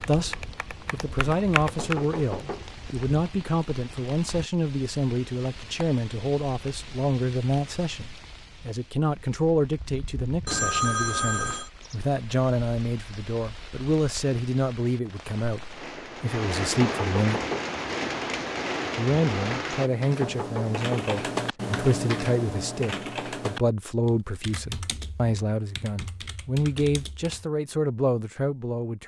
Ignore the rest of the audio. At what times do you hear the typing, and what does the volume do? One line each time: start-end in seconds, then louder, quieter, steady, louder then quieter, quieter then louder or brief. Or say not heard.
0.0-2.0 brief
19.8-27.4 quieter.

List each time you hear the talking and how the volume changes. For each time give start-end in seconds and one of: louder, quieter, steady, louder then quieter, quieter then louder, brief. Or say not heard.
0.0-17.4 steady
18.9-29.0 steady.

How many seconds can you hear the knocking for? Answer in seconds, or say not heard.
4 s.